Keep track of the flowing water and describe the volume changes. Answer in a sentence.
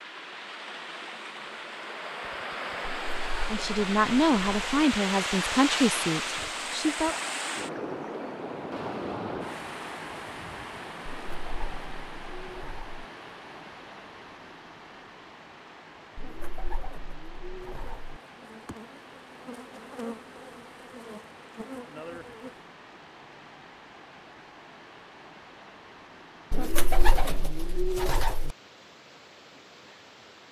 The loudness of the flowing water goes down.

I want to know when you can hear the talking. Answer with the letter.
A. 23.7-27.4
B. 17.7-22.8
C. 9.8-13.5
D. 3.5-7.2
D.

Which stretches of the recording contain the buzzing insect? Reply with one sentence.
The buzzing insect can be heard from 17.7 to 22.8 s.